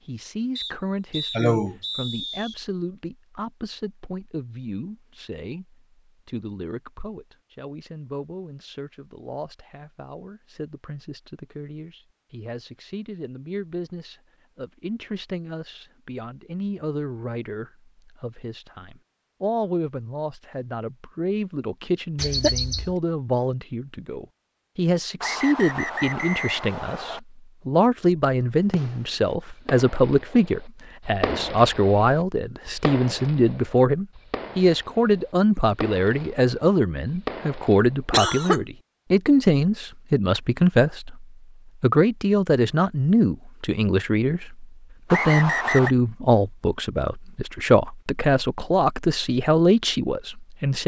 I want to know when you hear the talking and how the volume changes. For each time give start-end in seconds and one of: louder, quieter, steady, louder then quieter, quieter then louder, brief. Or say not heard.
0.1-50.8 louder.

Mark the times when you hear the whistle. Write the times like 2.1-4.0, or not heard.
0.6-2.5, 25.2-27.2, 45.1-46.0.